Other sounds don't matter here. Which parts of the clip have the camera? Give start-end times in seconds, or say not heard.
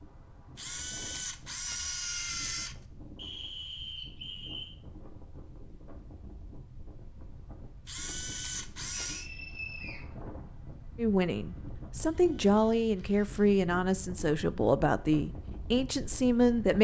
0.6-2.8, 7.8-9.3, 12.1-13.4.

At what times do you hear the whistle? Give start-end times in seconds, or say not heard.
3.1-4.7, 9.0-10.1.